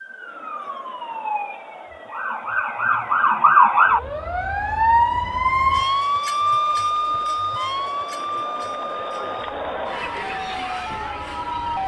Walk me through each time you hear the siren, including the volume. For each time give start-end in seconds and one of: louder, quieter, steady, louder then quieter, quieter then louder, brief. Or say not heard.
0.0-11.8 louder then quieter.